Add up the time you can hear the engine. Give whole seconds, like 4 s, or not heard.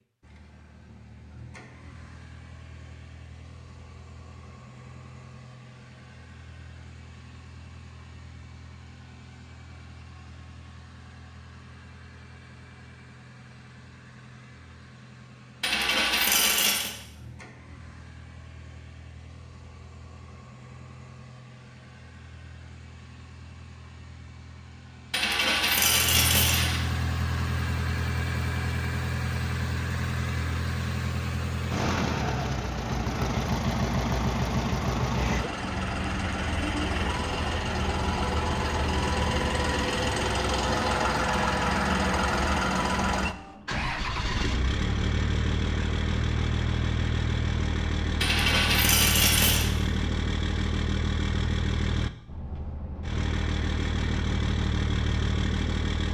56 s.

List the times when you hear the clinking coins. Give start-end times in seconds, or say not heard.
15.6-16.9, 25.1-26.9, 48.2-49.7.